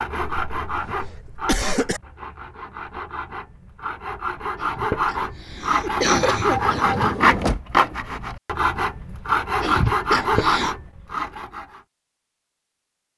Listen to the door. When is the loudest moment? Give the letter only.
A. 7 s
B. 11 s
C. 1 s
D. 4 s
A.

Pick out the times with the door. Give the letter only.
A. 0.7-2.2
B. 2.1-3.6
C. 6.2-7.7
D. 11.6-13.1
C.